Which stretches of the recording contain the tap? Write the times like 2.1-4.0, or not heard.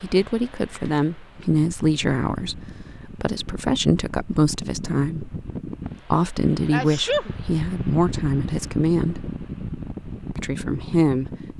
not heard.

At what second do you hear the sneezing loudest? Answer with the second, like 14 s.
7 s.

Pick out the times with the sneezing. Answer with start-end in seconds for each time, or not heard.
0.7-1.4, 6.7-7.3.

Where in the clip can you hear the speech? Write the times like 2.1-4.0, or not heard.
0.0-5.3, 6.1-9.2, 10.3-11.3.